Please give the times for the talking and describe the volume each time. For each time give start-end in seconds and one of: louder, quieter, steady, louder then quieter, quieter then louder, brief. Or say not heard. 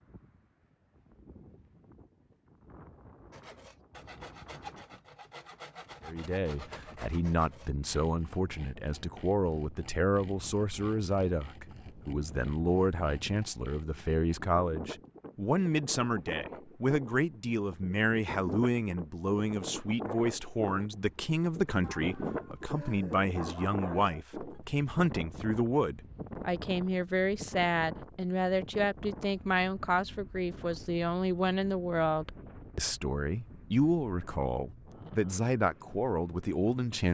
6.0-37.0 steady.